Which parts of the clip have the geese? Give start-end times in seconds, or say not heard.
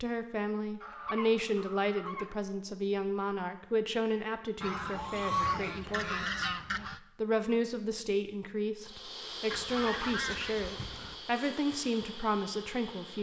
0.8-2.4, 4.6-7.0, 9.5-11.2.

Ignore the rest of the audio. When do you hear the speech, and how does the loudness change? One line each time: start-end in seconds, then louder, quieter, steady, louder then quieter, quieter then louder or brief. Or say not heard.
0.0-6.5 quieter
7.2-13.1 steady.